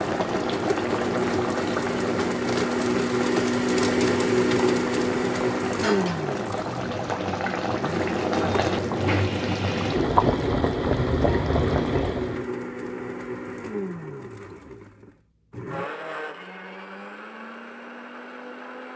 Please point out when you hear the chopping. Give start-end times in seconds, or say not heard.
not heard.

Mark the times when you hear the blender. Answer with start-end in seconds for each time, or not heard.
0.0-18.9.